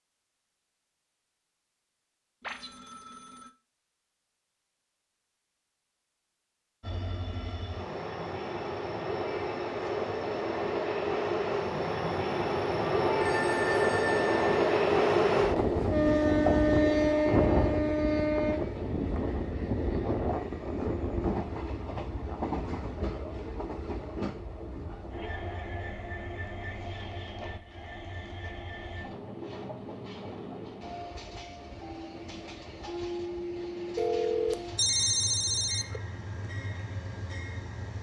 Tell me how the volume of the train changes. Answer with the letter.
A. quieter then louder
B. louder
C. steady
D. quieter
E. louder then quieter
E.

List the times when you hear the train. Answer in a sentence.
You can hear the train from 6.8 to 37.9 s.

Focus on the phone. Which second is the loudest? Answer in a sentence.
The volume of the phone peaks at 35 seconds.